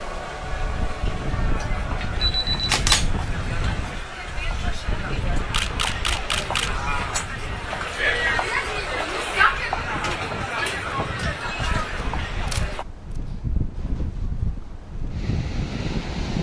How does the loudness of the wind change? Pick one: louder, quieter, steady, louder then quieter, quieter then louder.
quieter then louder.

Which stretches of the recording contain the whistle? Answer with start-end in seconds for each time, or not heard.
not heard.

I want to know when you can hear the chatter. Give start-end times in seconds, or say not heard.
0.0-12.8.